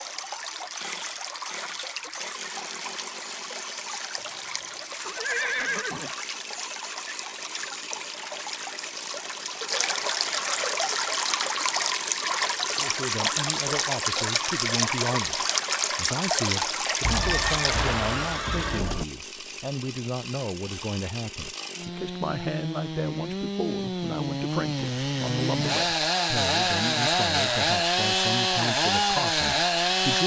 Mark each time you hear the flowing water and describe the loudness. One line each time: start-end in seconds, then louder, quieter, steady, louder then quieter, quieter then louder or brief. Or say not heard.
0.0-18.4 louder.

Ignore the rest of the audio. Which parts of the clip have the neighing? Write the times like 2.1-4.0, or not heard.
4.2-6.2, 17.0-19.1.